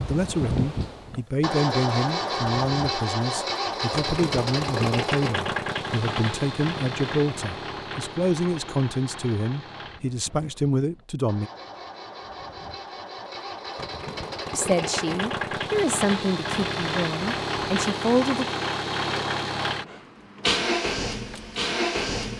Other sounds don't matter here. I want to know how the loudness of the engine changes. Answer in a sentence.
The volume of the engine goes down, then up.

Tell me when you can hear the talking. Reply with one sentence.
You can hear the talking from 0.0 to 11.5 s and from 14.5 to 18.5 s.